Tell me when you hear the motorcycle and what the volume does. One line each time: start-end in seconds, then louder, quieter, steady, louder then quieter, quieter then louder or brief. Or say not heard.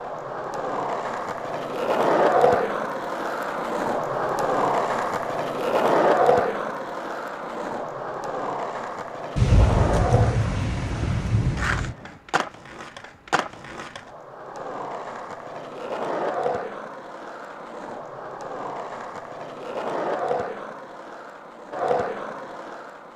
not heard.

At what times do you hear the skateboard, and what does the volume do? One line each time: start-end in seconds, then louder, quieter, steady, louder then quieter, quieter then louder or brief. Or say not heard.
0.0-23.1 quieter.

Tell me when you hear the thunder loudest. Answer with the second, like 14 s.
10 s.